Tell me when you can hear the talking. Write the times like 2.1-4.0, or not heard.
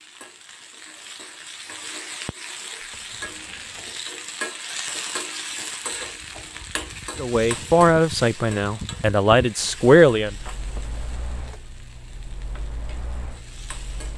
7.2-10.3.